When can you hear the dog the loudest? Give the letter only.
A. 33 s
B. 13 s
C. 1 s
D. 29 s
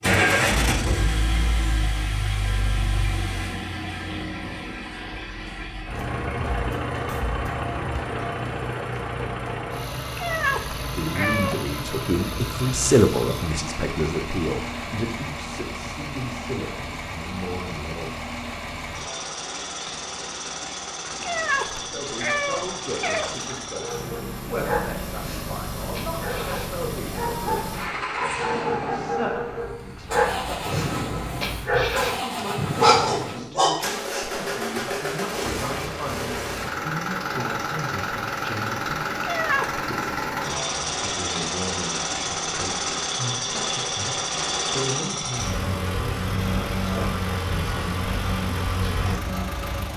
A.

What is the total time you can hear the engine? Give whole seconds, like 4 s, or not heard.
50 s.